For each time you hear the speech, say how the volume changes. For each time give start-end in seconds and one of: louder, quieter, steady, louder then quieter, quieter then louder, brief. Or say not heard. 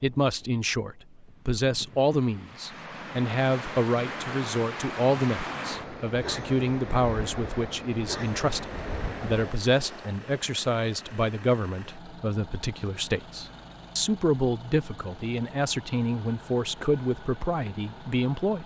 0.0-18.6 steady.